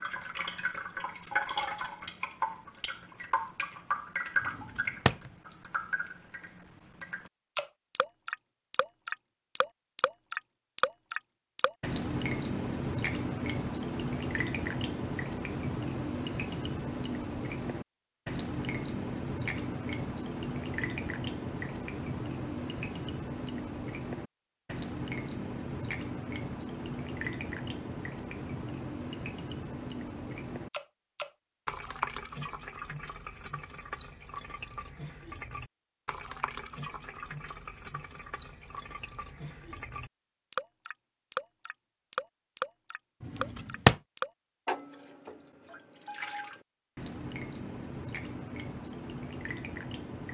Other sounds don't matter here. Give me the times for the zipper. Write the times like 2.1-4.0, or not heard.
not heard.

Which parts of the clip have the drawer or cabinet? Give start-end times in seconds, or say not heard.
4.4-5.3, 43.2-44.0.